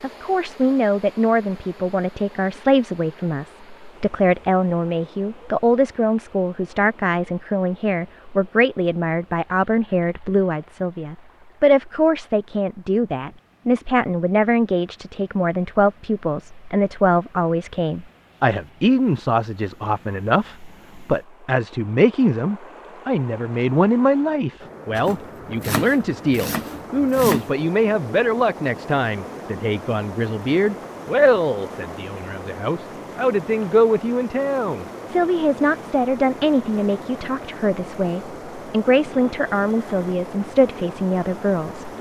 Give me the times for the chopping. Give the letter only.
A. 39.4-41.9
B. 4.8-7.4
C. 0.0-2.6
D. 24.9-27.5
D.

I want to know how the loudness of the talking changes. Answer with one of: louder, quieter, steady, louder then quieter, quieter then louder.
steady.